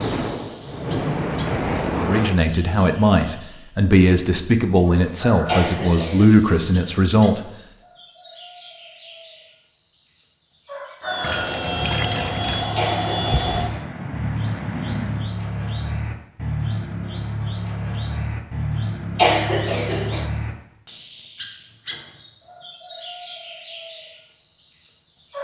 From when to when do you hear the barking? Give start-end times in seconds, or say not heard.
not heard.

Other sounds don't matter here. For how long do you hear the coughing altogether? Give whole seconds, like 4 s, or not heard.
3 s.